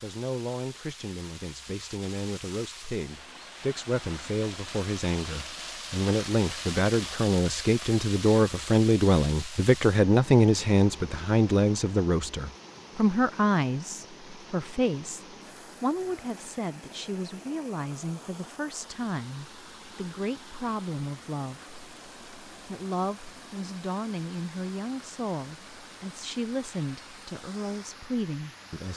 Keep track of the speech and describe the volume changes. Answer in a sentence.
The volume of the speech goes up, then down.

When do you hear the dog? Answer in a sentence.
The dog can't be heard in this clip.